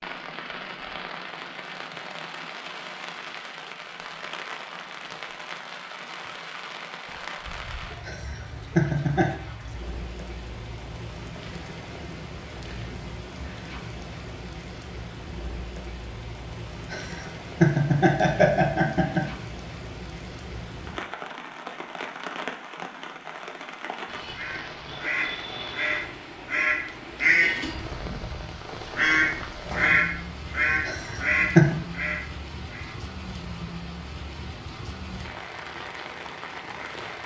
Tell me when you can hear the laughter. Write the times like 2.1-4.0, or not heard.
8.1-9.3, 16.9-19.2, 30.9-31.8.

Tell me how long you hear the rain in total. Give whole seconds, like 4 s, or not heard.
37 s.